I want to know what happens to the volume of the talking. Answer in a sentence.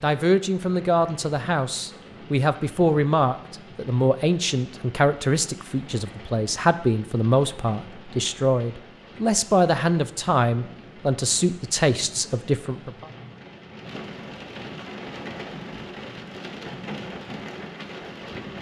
The volume of the talking stays about the same.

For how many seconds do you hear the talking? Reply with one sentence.
You can hear the talking for 13 seconds altogether.